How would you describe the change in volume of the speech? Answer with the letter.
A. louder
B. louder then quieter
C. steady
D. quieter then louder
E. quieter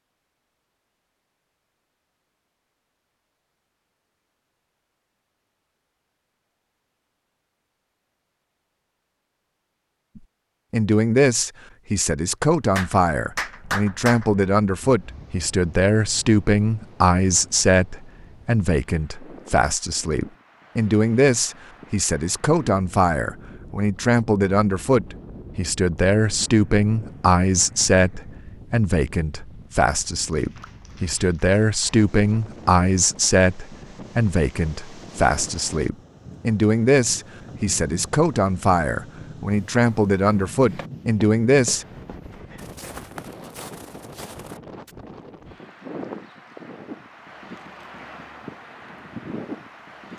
C.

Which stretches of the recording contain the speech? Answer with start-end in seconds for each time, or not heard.
10.2-41.9.